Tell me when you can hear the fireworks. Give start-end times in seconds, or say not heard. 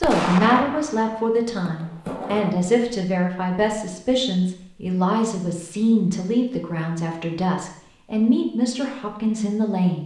0.0-2.5.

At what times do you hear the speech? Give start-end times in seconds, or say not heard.
0.0-10.0.